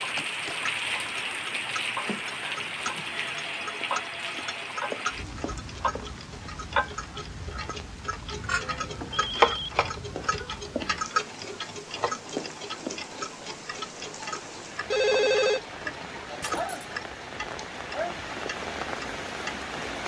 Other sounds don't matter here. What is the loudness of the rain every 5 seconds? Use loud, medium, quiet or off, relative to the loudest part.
loud, medium, medium, loud.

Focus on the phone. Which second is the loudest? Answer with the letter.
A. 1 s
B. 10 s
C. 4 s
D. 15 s
D.